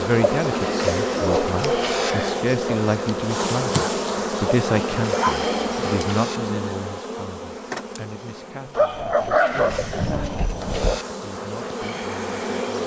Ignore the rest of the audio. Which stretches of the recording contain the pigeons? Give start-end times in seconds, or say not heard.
0.2-2.1, 4.7-6.4, 9.1-11.1.